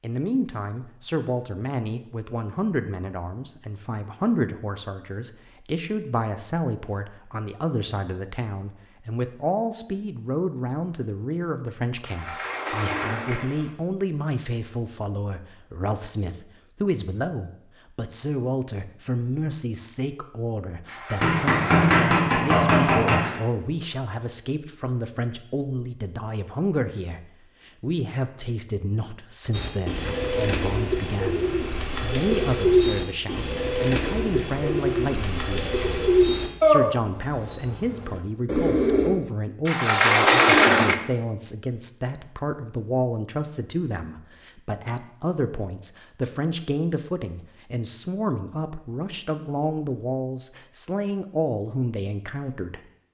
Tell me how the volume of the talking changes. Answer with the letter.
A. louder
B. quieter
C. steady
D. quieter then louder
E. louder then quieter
C.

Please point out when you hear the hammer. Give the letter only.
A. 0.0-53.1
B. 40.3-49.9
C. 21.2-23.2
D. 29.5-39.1
C.